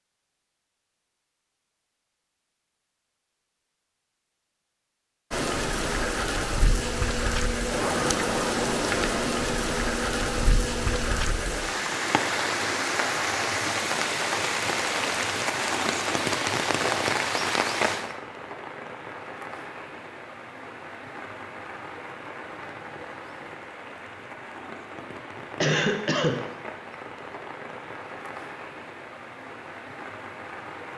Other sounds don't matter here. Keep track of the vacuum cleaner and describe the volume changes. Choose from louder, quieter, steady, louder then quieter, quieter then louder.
steady.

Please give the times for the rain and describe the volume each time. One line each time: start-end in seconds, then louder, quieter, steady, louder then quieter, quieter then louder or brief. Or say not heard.
5.3-30.9 quieter.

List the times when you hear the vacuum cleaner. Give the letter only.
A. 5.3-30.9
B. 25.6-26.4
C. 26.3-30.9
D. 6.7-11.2
D.